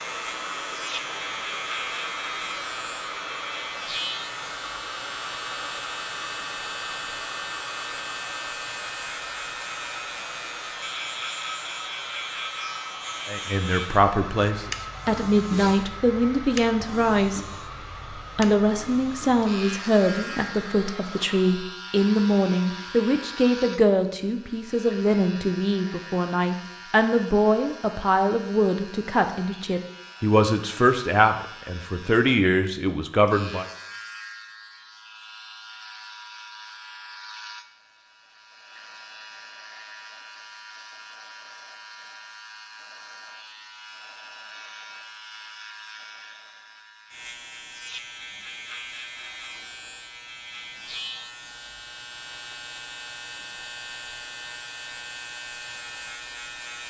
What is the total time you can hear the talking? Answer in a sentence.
The talking can be heard for 20 seconds in total.